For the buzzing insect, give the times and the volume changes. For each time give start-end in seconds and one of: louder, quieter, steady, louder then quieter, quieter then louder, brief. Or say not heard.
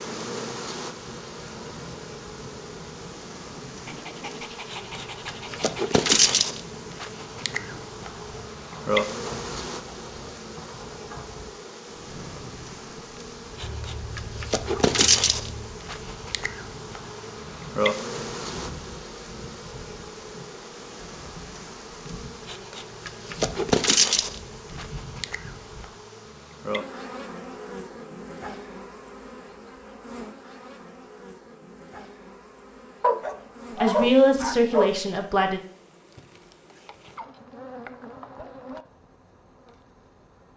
0.0-40.5 quieter.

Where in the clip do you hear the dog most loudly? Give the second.
34 s.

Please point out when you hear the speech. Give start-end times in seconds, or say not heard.
33.8-35.6.